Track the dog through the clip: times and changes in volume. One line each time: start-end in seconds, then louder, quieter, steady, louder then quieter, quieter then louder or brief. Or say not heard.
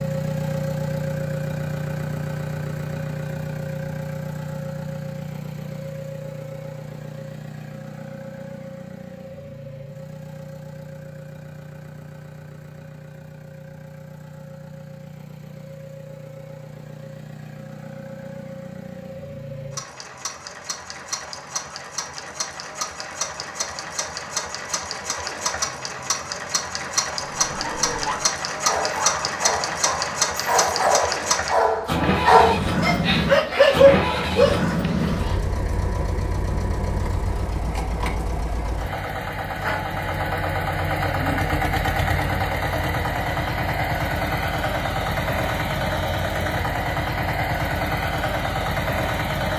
27.4-35.4 louder.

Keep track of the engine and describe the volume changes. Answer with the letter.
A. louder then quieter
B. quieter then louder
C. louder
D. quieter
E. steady
B.